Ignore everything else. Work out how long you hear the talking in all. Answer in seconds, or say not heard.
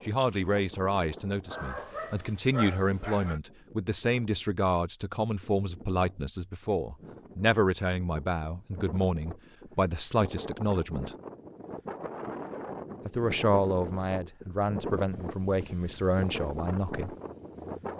15 s.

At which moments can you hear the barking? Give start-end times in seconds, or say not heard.
1.5-3.4.